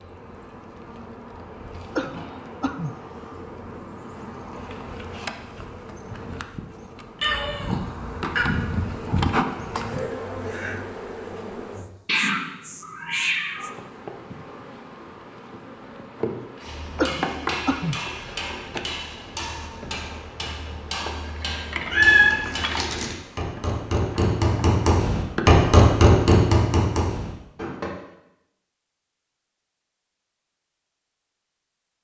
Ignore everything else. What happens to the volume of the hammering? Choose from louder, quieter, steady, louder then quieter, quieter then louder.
louder.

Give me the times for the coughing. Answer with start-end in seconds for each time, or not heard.
1.9-3.0, 16.9-18.0.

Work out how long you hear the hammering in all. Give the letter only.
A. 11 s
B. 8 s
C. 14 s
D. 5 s
A.